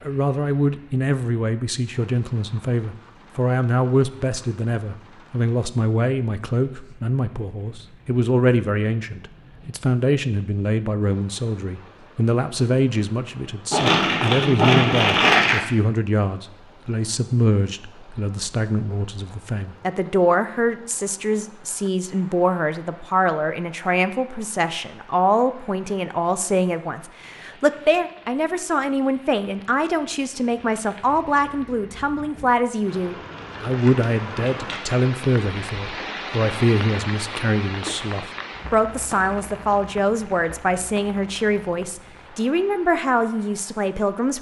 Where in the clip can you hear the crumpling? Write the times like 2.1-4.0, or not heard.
13.7-15.6, 33.4-35.0.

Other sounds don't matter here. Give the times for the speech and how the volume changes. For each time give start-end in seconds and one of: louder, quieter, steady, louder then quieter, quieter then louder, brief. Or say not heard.
0.0-44.3 steady.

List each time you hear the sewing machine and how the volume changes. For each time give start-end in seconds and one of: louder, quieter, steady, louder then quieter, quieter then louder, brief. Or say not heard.
not heard.